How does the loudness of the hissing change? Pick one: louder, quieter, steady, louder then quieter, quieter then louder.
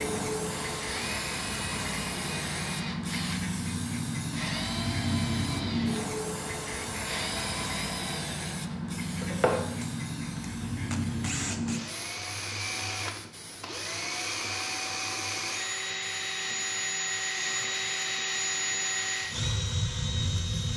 quieter.